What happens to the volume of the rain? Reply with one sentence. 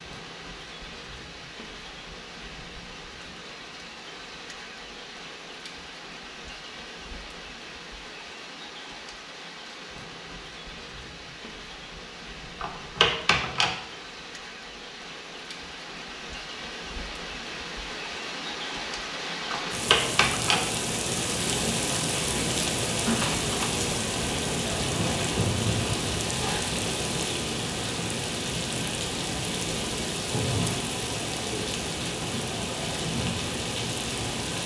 The volume of the rain goes up.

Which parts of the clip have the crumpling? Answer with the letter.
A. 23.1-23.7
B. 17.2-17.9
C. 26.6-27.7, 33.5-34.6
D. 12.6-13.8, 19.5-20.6
A.